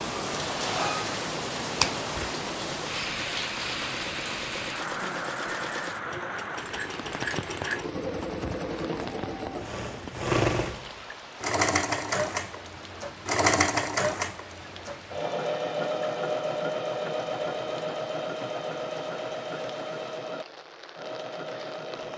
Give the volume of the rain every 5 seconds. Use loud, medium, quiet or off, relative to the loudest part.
loud, medium, quiet, quiet, quiet.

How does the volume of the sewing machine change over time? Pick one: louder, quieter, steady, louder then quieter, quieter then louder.
louder then quieter.